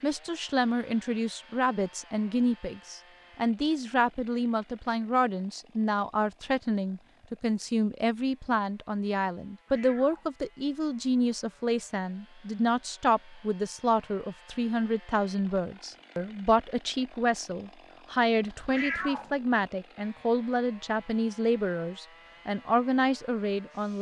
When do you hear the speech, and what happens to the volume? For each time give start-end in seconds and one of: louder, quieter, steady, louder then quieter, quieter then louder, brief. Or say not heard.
0.0-23.9 steady.